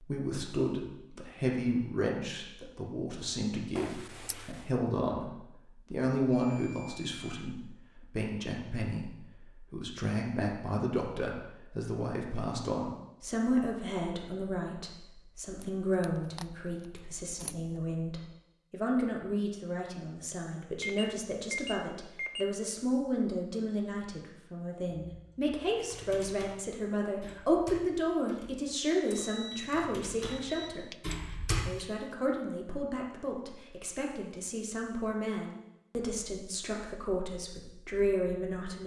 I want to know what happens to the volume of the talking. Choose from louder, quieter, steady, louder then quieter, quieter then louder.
steady.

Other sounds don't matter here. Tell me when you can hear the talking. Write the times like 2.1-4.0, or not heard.
0.0-30.9, 31.6-38.8.